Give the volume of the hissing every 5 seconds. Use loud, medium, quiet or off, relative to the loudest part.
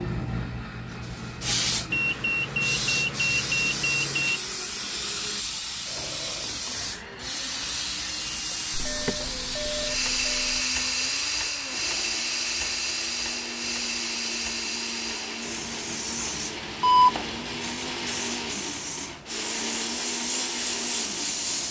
loud, loud, loud, medium, loud.